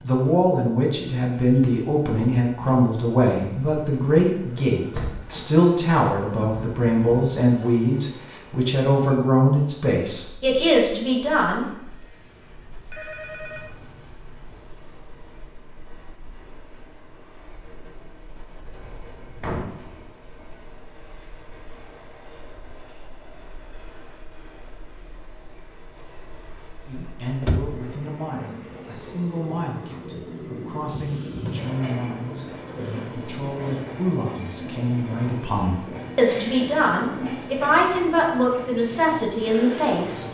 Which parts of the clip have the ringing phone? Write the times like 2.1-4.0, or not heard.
12.7-13.8.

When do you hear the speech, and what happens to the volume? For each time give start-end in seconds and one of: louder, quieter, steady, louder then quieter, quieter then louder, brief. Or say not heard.
0.0-11.7 steady
26.9-40.3 louder.